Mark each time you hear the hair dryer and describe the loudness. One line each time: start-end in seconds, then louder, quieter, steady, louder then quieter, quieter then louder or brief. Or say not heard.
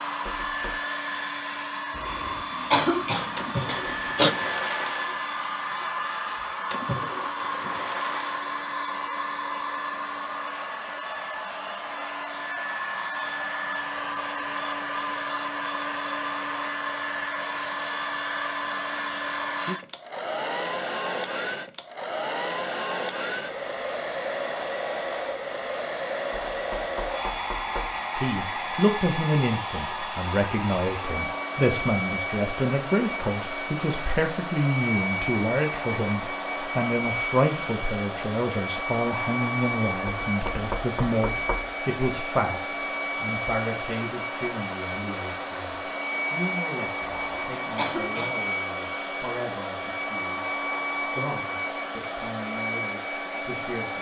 0.0-53.9 steady.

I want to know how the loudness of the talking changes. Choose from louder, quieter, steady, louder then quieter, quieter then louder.
quieter.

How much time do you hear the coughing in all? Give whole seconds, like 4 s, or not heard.
4 s.